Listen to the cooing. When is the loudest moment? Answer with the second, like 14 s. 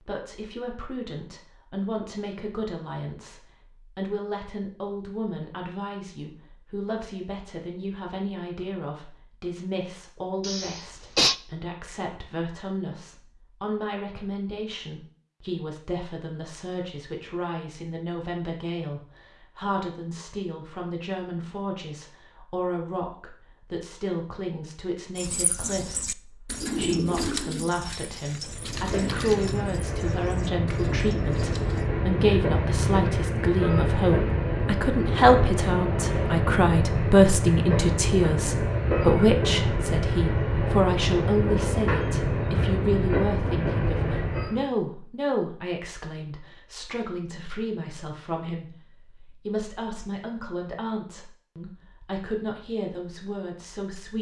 27 s.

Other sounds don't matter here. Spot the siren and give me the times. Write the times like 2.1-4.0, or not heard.
not heard.